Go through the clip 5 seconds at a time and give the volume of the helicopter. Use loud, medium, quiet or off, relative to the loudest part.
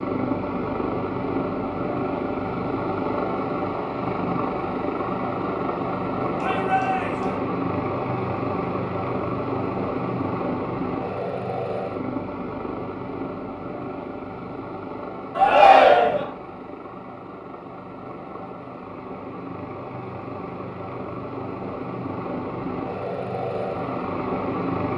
loud, loud, loud, medium, loud.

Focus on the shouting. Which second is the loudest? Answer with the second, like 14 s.
16 s.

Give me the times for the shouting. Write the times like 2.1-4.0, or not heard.
6.3-7.3, 15.3-16.2.